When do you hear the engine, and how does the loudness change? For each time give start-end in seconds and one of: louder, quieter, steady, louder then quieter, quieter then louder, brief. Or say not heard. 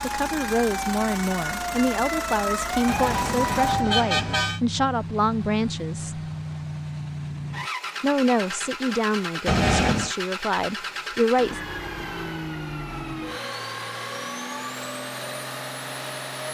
0.0-16.4 steady.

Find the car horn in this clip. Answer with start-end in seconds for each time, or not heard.
2.9-4.6, 9.4-10.2.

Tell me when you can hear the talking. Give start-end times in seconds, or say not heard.
0.0-6.2, 8.0-11.6.